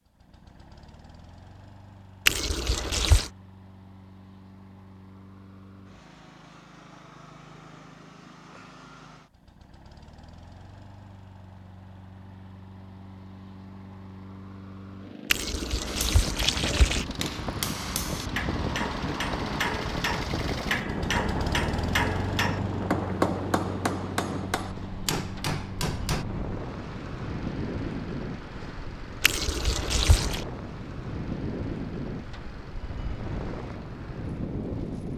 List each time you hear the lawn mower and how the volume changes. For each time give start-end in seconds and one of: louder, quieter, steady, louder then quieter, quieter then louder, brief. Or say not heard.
0.0-35.1 louder then quieter.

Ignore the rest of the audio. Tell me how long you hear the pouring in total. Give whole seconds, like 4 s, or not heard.
4 s.